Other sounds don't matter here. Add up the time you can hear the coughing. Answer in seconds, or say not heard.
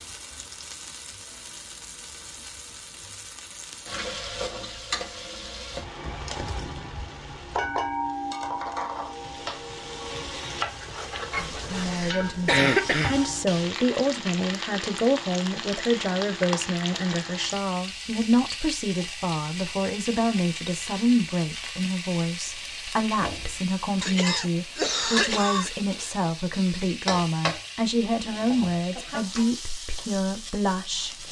4 s.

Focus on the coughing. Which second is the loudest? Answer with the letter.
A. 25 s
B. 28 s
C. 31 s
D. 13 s
D.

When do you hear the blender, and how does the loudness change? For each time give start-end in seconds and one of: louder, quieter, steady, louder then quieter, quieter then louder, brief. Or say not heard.
not heard.